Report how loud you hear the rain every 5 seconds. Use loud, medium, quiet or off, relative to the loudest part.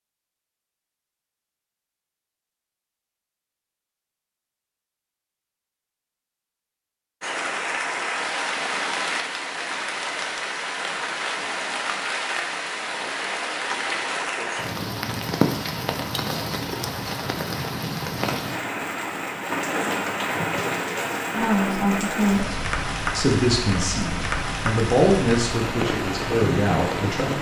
off, loud, loud, loud, loud, loud.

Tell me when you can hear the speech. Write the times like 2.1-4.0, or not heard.
21.4-27.3.